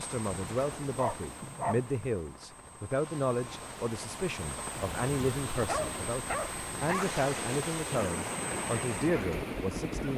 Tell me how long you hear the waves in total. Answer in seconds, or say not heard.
10 s.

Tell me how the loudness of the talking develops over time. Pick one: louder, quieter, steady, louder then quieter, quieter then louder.
steady.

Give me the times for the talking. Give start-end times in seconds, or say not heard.
0.0-10.1.